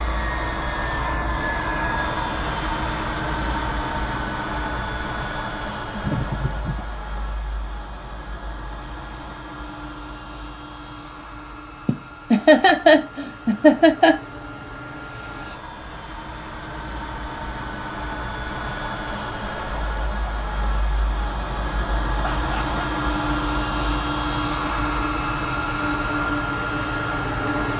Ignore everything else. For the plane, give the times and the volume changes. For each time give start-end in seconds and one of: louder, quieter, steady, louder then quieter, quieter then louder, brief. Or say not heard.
0.0-27.7 quieter then louder.